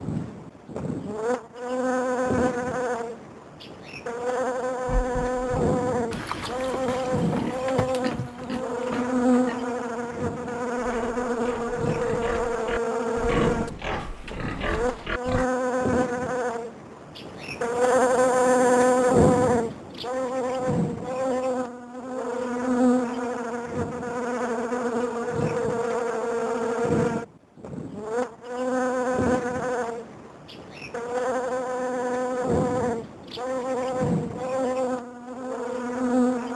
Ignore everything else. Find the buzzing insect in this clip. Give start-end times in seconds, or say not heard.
0.0-36.5.